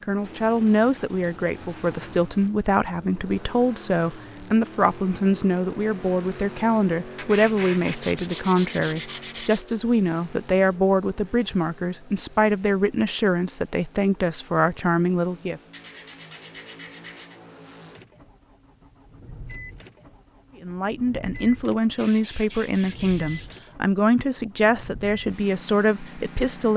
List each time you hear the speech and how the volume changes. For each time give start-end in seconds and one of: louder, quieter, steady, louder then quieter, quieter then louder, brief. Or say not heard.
0.0-15.6 steady
20.6-26.7 steady.